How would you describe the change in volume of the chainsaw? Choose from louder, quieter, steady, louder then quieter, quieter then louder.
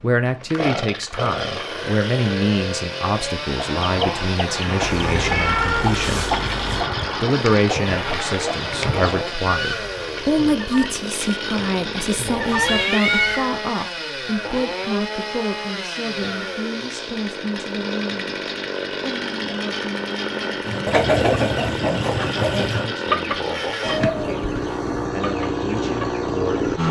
steady.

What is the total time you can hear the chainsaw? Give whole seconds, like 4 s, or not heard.
27 s.